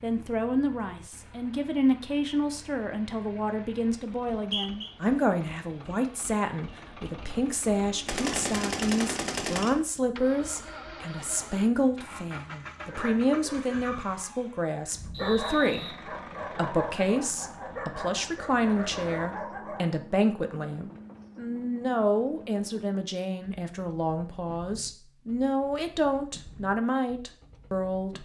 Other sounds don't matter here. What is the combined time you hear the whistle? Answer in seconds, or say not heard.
2 s.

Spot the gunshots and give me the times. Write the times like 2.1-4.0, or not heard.
8.1-9.8.